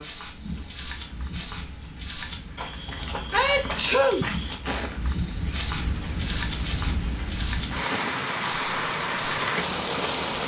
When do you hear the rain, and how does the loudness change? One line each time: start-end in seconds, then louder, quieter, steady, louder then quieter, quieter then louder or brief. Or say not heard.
0.0-10.4 louder.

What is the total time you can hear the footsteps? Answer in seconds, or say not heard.
10 s.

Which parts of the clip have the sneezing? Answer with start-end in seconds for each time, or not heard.
2.9-4.2.